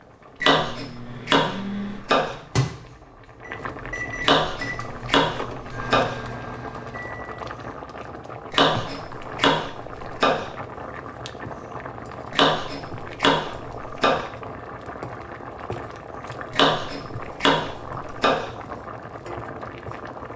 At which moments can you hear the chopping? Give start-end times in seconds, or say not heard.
0.4-2.4, 4.2-6.2, 8.5-10.5, 12.3-14.2, 16.5-18.5.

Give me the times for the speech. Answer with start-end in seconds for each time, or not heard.
not heard.